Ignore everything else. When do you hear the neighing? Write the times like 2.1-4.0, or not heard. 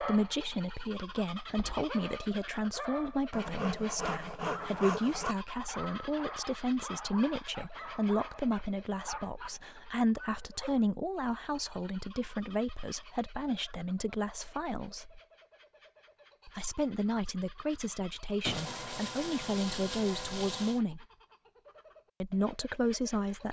not heard.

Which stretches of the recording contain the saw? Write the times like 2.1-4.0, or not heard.
3.3-5.3, 18.4-20.8.